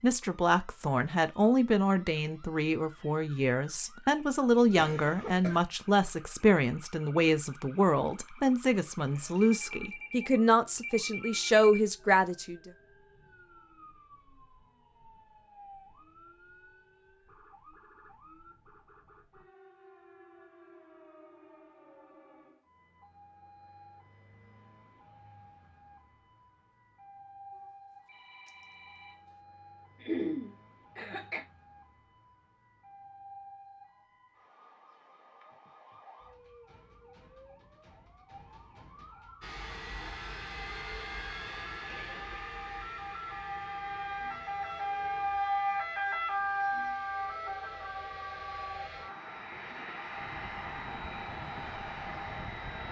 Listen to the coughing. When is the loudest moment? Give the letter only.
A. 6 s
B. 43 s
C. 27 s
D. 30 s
D.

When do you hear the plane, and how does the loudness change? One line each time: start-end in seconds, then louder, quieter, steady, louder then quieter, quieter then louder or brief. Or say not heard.
39.4-52.8 quieter then louder.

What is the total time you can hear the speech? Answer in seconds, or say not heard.
13 s.